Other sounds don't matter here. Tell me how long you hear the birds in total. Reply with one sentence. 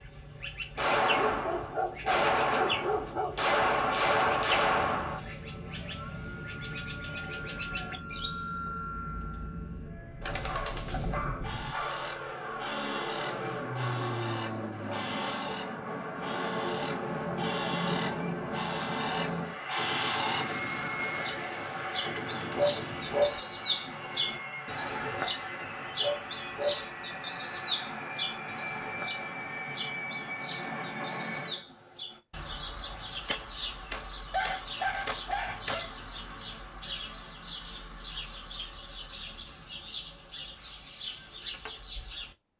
You can hear the birds for 42 seconds altogether.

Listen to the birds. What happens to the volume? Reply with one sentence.
The volume of the birds goes up, then down.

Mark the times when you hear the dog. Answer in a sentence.
The dog can be heard from 1.1 to 3.5 s, from 10.2 to 12.1 s, from 22.6 to 23.4 s, from 25.9 to 26.9 s and from 34.3 to 35.9 s.